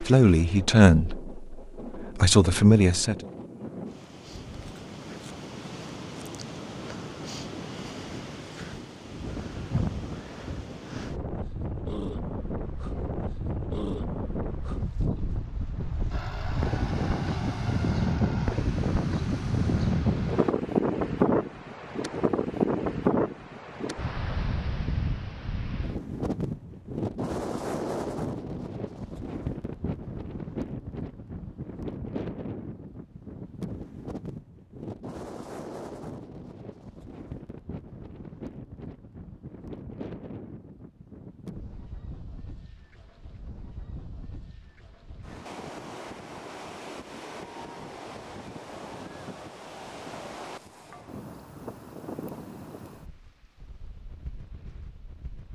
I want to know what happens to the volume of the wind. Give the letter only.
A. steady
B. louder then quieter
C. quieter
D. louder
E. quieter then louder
B.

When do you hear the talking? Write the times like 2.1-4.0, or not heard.
0.0-3.1.